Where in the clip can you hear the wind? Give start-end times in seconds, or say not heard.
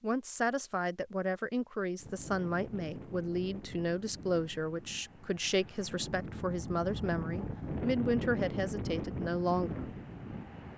1.9-10.7.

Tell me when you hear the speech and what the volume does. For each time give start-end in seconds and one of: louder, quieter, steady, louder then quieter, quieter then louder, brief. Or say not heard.
0.0-9.8 steady.